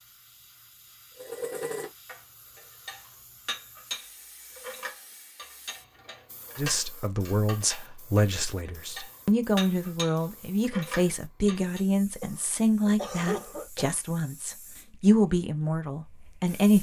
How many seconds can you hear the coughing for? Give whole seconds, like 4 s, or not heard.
2 s.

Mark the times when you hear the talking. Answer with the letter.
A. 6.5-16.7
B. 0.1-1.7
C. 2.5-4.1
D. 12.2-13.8
A.